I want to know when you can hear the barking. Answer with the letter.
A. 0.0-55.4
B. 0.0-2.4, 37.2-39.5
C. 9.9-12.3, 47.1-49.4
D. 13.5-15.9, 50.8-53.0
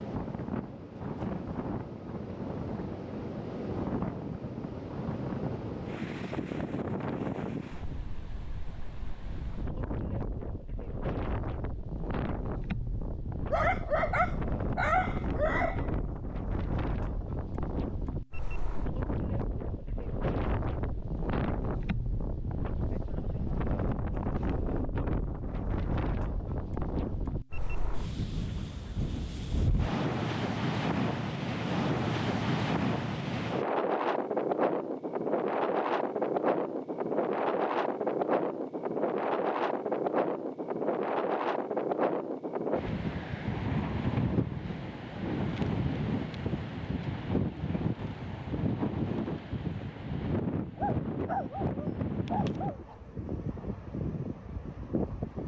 D.